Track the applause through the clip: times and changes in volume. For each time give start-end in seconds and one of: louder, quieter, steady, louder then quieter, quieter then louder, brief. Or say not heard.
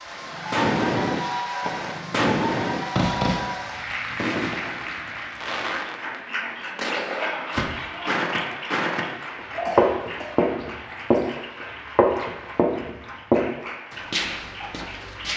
0.0-15.3 quieter.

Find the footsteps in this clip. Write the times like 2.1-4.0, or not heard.
7.5-9.1, 9.8-11.2, 11.9-15.3.